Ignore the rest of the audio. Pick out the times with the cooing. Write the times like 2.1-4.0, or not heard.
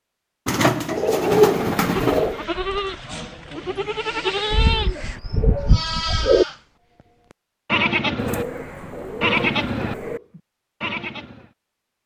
0.5-2.5, 4.5-6.5, 8.2-10.2.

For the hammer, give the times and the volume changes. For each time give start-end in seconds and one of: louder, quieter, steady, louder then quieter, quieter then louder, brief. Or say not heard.
not heard.